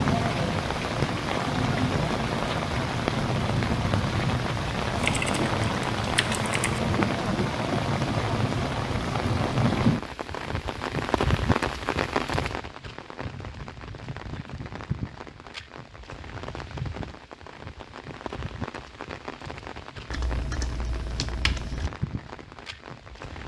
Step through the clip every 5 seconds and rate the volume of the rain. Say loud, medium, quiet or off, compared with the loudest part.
loud, loud, medium, quiet, quiet.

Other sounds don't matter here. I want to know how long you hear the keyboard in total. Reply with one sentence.
The keyboard can be heard for 4 seconds in total.